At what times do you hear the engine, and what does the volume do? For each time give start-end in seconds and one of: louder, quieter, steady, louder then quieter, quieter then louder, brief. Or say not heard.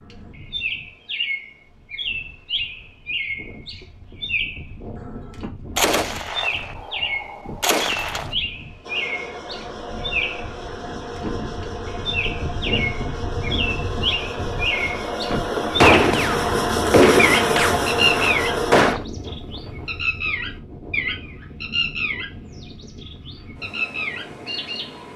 8.8-18.9 louder.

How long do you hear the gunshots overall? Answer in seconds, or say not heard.
6 s.